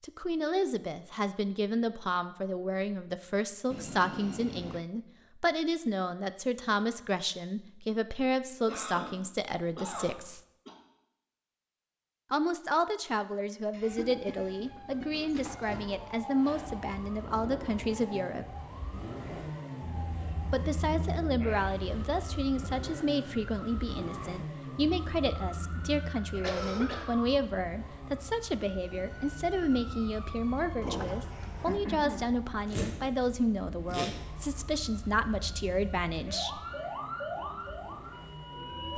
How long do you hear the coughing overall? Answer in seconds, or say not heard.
4 s.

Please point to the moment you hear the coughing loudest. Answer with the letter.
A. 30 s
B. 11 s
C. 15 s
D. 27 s
D.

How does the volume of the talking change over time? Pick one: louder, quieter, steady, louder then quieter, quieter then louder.
steady.